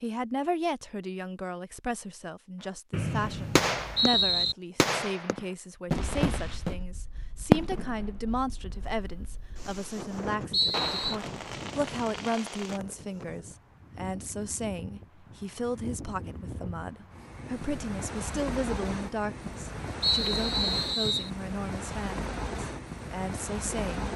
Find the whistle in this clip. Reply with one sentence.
You can hear the whistle from 2.9 to 4.5 s, from 10.5 to 11.2 s and from 20.0 to 21.3 s.